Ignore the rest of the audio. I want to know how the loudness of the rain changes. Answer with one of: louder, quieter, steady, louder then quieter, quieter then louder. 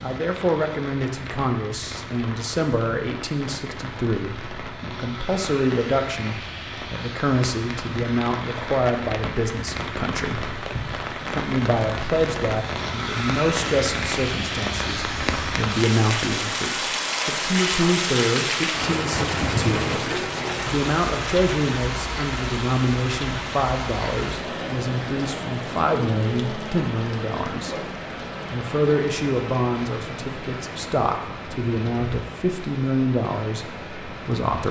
louder then quieter.